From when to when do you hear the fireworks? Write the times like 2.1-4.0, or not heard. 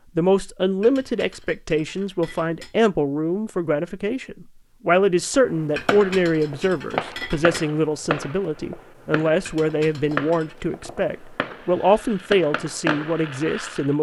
5.5-13.9.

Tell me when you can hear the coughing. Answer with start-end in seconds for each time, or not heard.
not heard.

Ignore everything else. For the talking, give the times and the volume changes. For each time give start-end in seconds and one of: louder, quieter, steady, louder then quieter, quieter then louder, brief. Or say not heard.
0.1-13.9 steady.